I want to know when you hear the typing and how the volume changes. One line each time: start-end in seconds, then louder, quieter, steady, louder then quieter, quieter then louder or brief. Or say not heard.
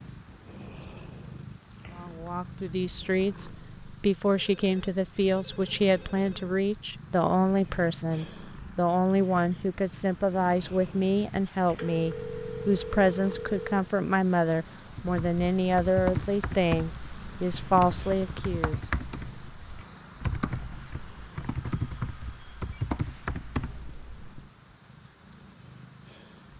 14.9-24.5 steady.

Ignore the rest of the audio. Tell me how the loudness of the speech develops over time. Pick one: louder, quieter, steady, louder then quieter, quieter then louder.
steady.